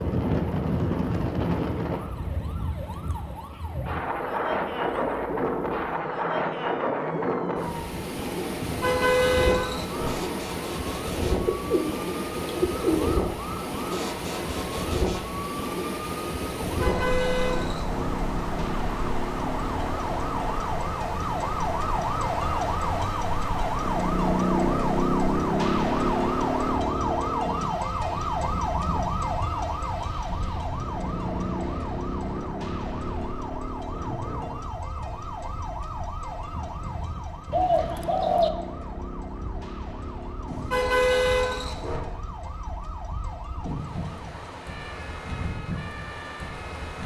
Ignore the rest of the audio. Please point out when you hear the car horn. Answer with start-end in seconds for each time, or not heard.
8.6-10.1, 16.6-18.1, 40.5-42.0.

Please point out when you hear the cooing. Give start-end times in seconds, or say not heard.
11.3-13.2, 37.5-38.5.